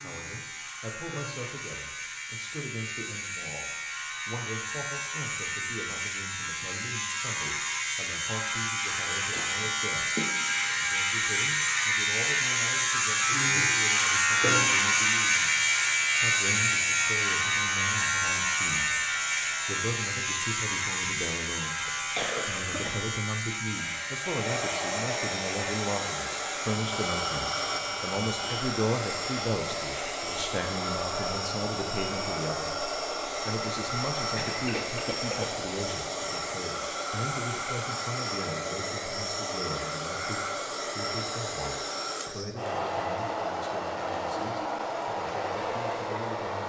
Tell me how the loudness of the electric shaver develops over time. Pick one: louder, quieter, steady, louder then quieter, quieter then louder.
louder then quieter.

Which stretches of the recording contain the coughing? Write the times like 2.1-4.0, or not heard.
9.3-10.8, 21.9-22.9, 34.4-35.5.